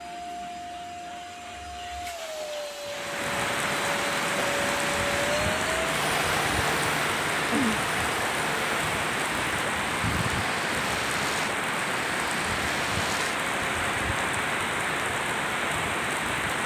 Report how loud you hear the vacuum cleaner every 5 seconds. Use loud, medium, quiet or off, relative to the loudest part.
loud, loud, medium, off.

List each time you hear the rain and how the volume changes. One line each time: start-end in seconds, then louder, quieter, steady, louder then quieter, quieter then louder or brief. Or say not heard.
2.9-16.6 steady.